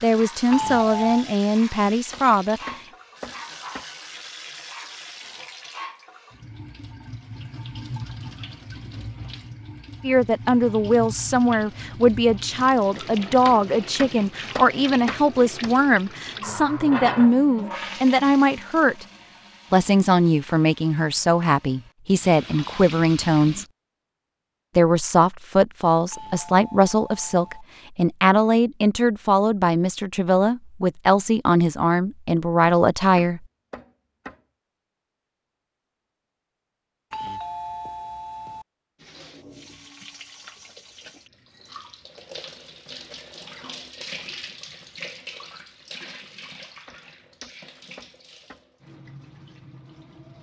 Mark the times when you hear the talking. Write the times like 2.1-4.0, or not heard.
0.0-2.6, 10.0-19.1, 19.7-23.6, 24.8-33.4.